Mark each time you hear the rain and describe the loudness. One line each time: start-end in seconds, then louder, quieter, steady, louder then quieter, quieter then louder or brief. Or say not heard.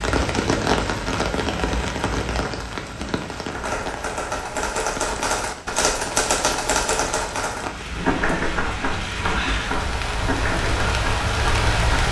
0.0-12.0 quieter then louder.